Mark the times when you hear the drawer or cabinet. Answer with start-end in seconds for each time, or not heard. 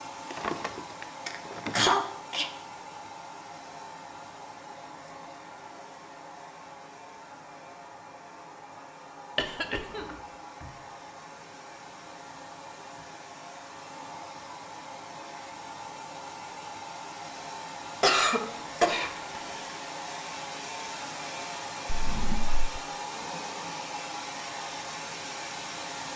0.3-1.9, 9.9-10.8, 21.9-22.8.